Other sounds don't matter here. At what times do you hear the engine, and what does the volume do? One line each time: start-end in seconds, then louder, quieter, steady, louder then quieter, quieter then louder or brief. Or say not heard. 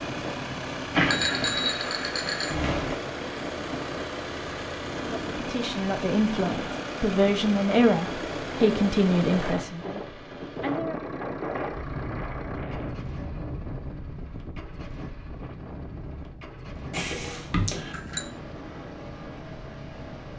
0.0-20.3 quieter.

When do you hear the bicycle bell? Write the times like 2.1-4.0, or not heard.
0.9-3.0, 16.9-18.2.